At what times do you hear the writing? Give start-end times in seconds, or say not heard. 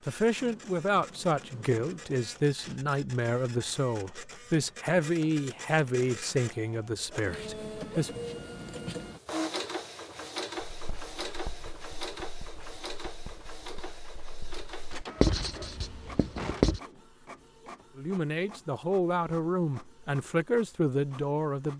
10.7-16.8.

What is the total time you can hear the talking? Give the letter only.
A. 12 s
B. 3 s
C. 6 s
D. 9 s
A.